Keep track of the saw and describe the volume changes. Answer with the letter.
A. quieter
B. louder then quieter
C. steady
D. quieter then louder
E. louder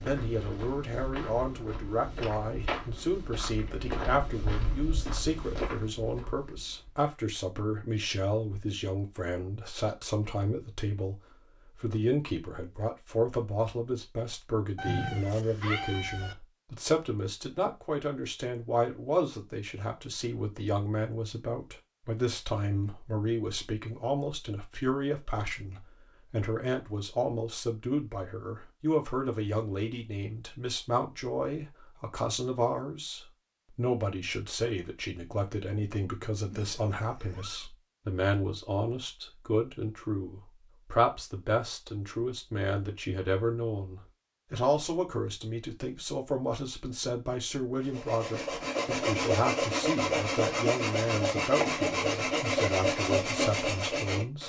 C.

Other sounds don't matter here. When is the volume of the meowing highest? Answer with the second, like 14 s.
15 s.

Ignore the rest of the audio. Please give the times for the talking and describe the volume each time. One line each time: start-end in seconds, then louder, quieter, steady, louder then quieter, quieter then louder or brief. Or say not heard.
0.0-54.4 steady.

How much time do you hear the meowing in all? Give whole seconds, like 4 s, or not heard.
3 s.